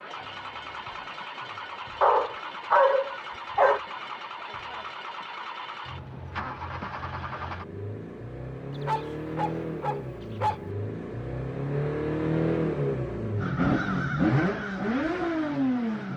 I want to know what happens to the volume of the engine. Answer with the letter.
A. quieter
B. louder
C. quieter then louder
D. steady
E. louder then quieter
B.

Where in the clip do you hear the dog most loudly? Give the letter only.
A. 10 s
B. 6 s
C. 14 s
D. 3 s
D.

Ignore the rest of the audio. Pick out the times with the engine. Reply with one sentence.
The engine can be heard from 0.0 to 16.1 s.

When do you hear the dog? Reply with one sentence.
The dog can be heard from 2.0 to 3.8 s and from 8.8 to 10.7 s.